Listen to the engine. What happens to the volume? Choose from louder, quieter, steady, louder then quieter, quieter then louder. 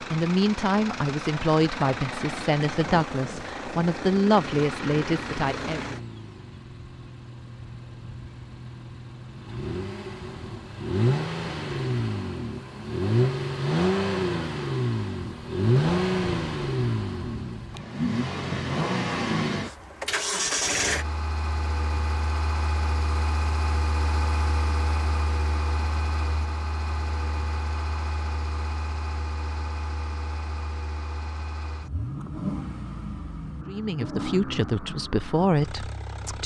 louder then quieter.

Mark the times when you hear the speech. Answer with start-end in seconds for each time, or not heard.
0.0-5.8, 33.6-36.4.